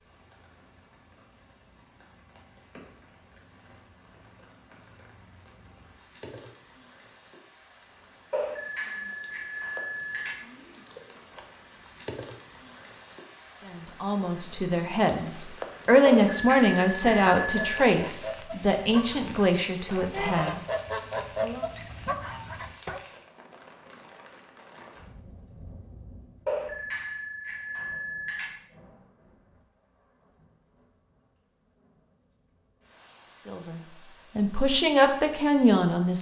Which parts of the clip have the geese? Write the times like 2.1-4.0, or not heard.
16.8-23.0.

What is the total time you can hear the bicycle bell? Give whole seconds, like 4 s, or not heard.
6 s.